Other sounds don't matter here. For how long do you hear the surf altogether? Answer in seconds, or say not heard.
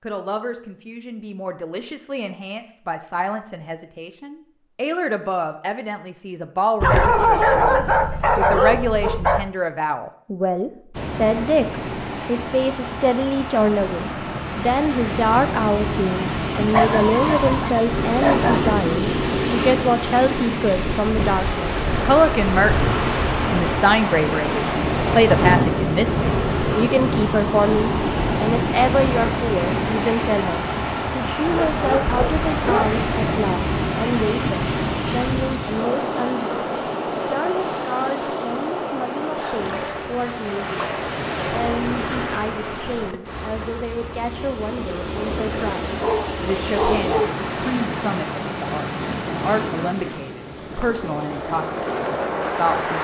42 s.